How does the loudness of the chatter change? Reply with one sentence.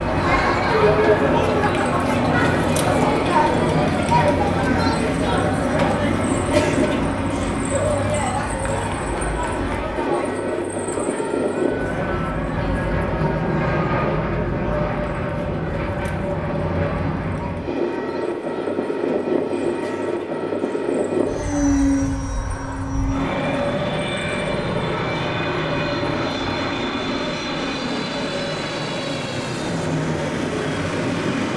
The volume of the chatter goes down.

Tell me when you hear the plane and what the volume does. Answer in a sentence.
You can hear the plane from 0.0 to 31.5 s, at a steady volume.